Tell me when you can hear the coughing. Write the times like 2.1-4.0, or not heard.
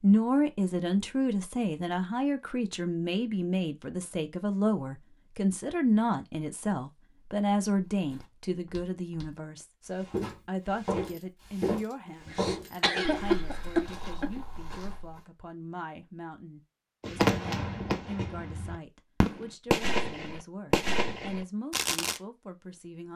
12.2-14.3.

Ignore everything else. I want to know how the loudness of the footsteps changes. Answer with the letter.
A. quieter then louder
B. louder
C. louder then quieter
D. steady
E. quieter
C.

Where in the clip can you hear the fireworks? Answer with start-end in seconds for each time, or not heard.
17.0-22.2.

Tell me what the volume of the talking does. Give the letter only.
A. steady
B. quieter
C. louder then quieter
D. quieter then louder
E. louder
B.